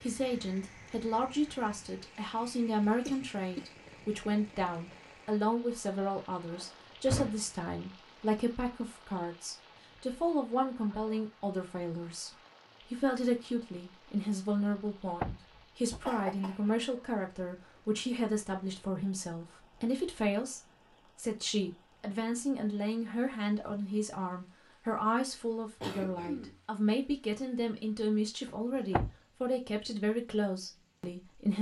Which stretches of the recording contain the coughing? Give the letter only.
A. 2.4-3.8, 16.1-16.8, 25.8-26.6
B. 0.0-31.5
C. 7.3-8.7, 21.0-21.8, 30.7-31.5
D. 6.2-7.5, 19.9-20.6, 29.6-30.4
A.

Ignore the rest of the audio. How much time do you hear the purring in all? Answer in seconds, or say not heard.
not heard.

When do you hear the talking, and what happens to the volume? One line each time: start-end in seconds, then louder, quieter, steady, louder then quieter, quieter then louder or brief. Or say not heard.
0.0-31.5 steady.